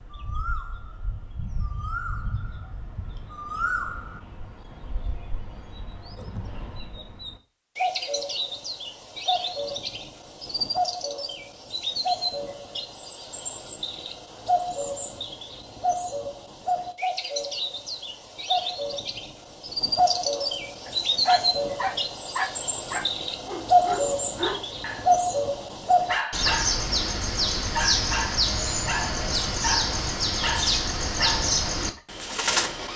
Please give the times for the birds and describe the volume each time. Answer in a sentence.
You can hear the birds from 0.0 to 32.9 s, getting louder.